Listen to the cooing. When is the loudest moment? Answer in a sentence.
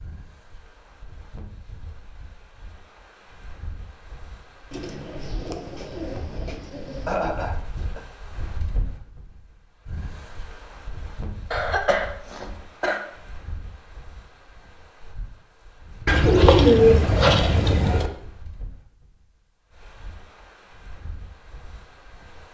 The loudest moment of the cooing is at 17 seconds.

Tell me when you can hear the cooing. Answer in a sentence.
The cooing can be heard from 4.7 to 7.2 s and from 16.1 to 18.1 s.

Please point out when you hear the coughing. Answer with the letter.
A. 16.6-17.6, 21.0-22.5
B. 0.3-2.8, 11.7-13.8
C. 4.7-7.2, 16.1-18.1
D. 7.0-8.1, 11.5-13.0
D.